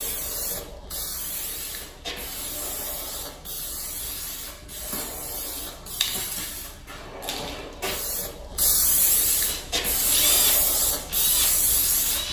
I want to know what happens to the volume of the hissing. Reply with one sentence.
The loudness of the hissing goes up.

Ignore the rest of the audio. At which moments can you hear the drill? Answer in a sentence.
The drill can be heard from 9.4 to 12.2 s.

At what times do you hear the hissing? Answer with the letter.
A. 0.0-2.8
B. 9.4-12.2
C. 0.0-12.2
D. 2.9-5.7
C.